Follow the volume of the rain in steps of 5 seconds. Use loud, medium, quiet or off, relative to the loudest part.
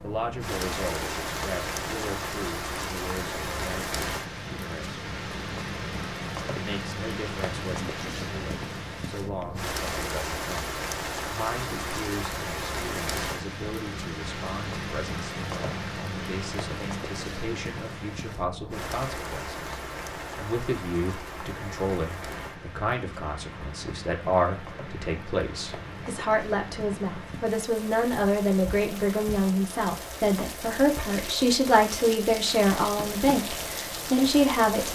loud, loud, loud, loud, medium, medium, loud.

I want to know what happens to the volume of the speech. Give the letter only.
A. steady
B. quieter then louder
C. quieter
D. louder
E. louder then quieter
D.